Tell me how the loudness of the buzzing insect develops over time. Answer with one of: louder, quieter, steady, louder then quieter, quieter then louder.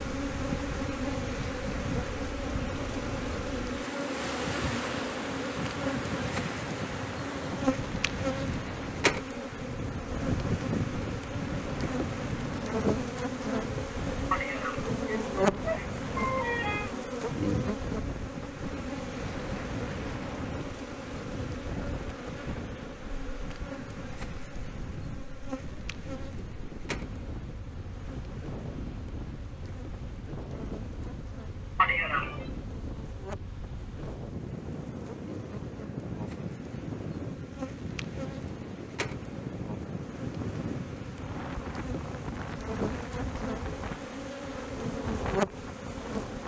quieter then louder.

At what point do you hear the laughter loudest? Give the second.
32 s.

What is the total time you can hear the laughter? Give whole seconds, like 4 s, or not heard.
3 s.